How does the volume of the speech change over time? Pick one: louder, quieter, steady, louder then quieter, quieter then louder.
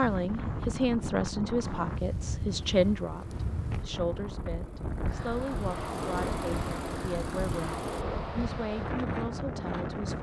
quieter.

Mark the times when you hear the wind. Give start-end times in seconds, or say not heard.
0.0-10.1.